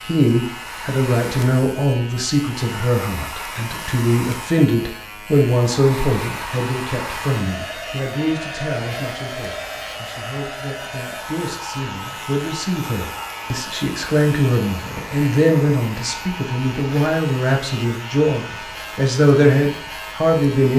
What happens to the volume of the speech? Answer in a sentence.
The volume of the speech goes down, then up.